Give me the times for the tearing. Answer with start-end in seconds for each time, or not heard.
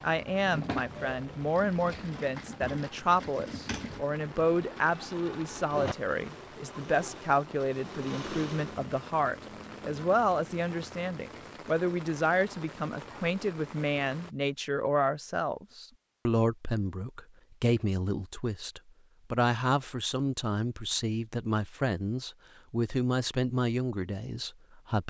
not heard.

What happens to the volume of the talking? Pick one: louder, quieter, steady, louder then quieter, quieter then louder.
steady.